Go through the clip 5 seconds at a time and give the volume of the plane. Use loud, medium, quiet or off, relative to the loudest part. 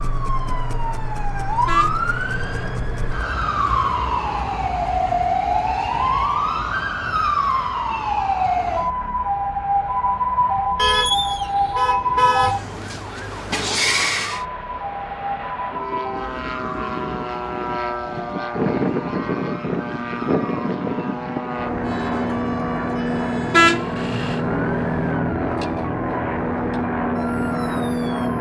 quiet, quiet, quiet, loud, loud, loud.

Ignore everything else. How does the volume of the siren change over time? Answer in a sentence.
The loudness of the siren goes down.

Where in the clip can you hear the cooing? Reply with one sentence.
The cooing can't be heard in this clip.